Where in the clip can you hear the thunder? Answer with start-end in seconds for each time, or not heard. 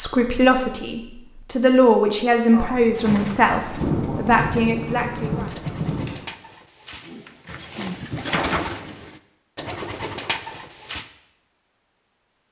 2.5-6.2.